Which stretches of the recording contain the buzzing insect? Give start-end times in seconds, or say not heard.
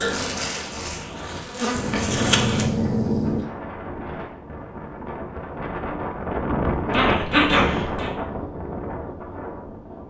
0.0-2.6.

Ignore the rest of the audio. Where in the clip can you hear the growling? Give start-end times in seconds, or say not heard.
1.8-3.5, 6.9-8.1.